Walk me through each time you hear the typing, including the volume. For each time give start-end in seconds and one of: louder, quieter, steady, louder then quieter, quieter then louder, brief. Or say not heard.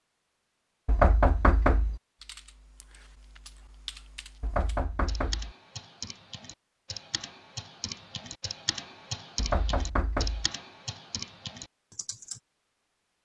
2.2-12.4 louder.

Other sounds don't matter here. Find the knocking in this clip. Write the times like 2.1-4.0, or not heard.
0.8-2.0, 4.4-5.5, 9.3-10.5.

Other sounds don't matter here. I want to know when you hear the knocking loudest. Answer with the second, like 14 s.
1 s.